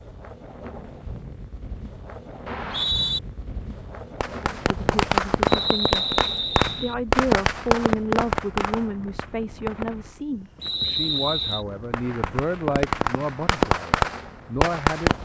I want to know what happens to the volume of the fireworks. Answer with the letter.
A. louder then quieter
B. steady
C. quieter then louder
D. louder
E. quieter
C.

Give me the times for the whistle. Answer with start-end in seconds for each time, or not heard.
2.5-3.2, 5.5-7.0, 10.6-11.7.